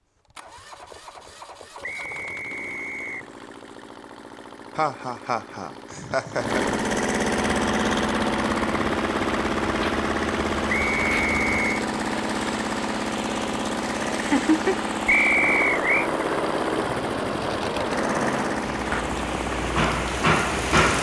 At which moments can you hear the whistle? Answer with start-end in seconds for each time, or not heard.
1.8-3.2, 10.7-11.8, 15.1-16.1.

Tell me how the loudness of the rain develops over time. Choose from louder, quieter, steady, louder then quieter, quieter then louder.
louder.